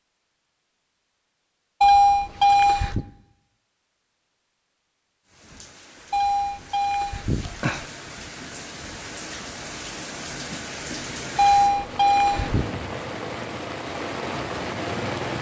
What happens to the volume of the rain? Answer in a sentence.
The volume of the rain goes up.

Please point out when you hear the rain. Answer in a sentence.
The rain can be heard from 5.2 to 15.3 s.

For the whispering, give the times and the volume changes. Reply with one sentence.
You can't hear the whispering here.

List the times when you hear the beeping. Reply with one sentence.
The beeping can be heard from 1.8 to 3.0 s, from 6.1 to 7.8 s and from 11.3 to 12.7 s.